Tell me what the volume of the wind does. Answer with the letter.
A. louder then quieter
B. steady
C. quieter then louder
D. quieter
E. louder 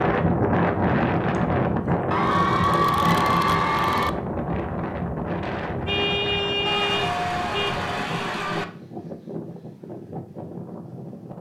D.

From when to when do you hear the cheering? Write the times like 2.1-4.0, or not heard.
2.1-4.1, 6.7-8.7.